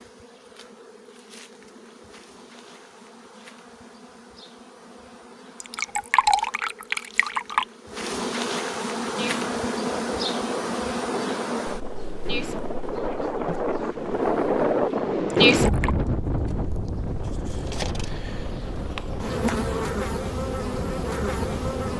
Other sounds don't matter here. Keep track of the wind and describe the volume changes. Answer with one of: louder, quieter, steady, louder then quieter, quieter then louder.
louder then quieter.